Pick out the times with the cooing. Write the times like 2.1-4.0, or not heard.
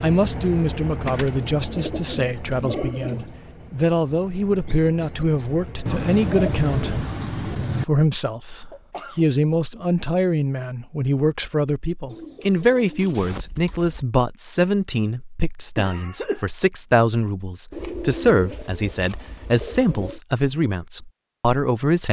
1.1-3.3, 5.8-7.8, 12.1-14.1, 17.7-20.2.